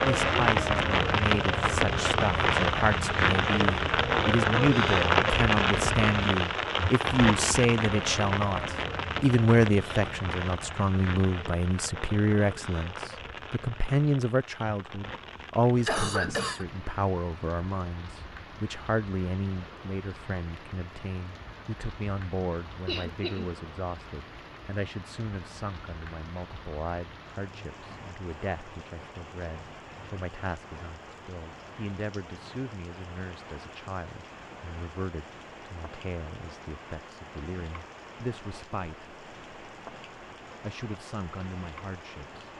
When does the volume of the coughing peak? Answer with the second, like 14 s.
16 s.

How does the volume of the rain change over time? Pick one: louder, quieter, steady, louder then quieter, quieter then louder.
quieter.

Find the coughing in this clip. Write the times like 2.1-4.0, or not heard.
15.8-16.6, 22.9-23.5.